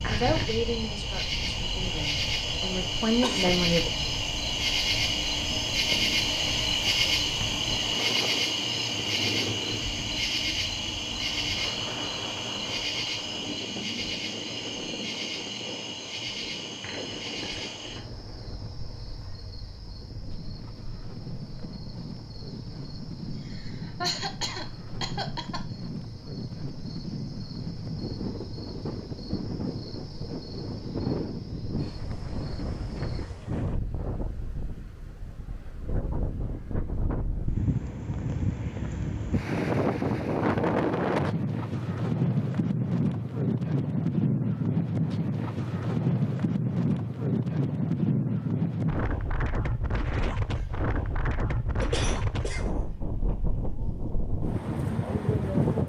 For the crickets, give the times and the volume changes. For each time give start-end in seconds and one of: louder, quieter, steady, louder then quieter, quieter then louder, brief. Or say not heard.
0.0-33.5 quieter.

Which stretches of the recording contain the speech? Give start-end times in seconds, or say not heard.
0.1-3.9.